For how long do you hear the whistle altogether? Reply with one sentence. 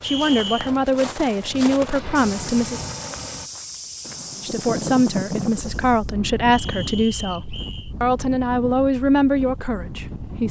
You can hear the whistle for 2 seconds altogether.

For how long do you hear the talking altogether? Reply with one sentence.
You can hear the talking for 9 seconds altogether.